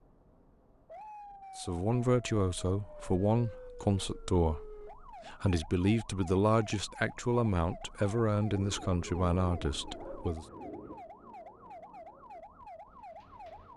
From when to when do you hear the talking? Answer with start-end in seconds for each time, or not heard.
1.6-10.4.